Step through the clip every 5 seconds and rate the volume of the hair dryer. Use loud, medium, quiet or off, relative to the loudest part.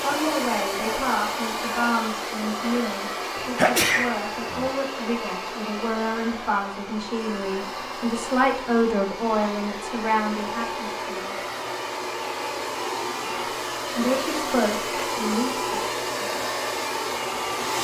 loud, medium, loud, loud.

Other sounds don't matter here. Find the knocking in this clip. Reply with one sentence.
The knocking can't be heard in this clip.